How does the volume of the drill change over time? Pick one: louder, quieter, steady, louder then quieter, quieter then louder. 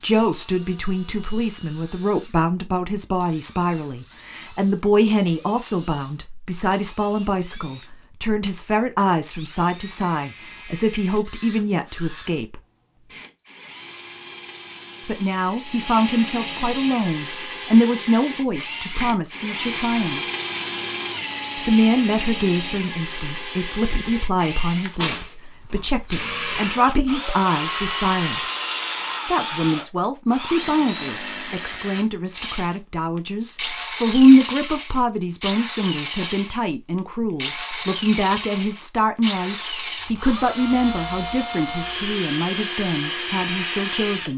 louder.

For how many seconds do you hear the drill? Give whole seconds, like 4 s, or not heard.
44 s.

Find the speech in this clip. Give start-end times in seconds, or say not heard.
0.0-12.6, 15.1-20.2, 21.6-28.4, 29.2-44.3.